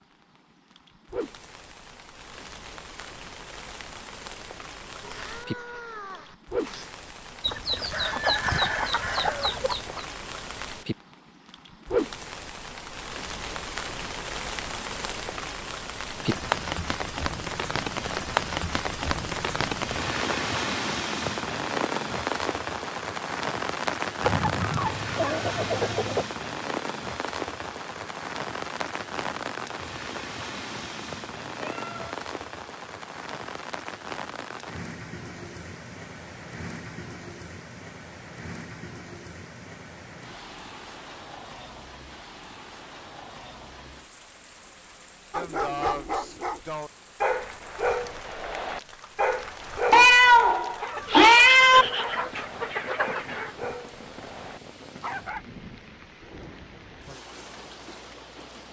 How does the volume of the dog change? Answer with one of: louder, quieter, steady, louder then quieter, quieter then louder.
quieter.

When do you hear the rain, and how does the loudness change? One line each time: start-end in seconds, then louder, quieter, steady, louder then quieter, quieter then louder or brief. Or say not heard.
0.0-58.6 louder then quieter.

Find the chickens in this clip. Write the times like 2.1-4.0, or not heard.
7.4-10.1, 24.2-26.2, 50.8-53.5.